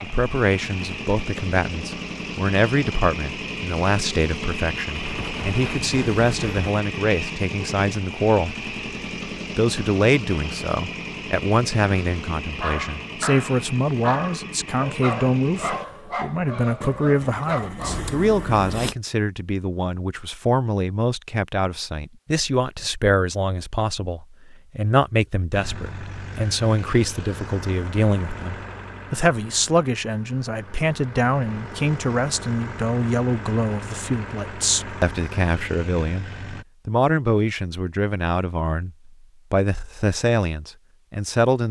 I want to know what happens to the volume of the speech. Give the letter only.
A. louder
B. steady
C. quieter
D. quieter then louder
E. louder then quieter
B.